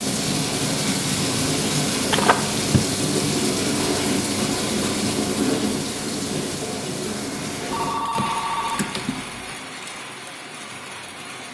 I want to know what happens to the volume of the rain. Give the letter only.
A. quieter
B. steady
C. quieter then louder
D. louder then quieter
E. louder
A.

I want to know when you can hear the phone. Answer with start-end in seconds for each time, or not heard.
2.1-2.9, 7.7-9.5.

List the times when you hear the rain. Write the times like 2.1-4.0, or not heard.
0.0-11.4.